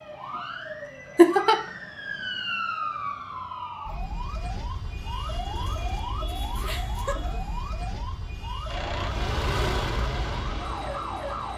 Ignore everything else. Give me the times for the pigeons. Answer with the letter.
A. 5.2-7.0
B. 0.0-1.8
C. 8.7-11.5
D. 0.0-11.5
A.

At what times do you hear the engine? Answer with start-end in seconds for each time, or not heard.
8.7-11.5.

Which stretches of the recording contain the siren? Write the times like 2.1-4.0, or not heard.
0.0-11.5.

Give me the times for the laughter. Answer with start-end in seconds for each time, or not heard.
1.1-1.6, 6.6-7.4.